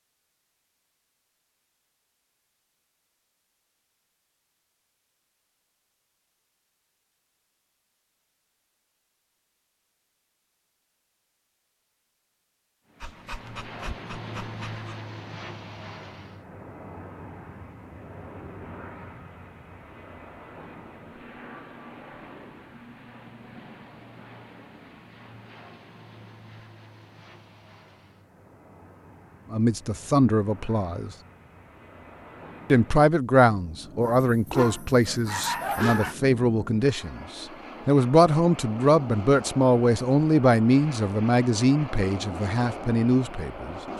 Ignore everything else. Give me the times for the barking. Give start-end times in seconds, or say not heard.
13.0-14.9, 34.0-36.1.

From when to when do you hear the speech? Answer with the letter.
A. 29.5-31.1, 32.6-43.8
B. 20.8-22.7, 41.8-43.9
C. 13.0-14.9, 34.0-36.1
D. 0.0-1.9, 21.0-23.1
A.